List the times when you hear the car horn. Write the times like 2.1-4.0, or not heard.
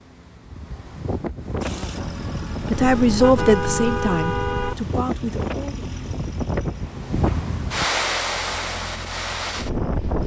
2.7-4.8.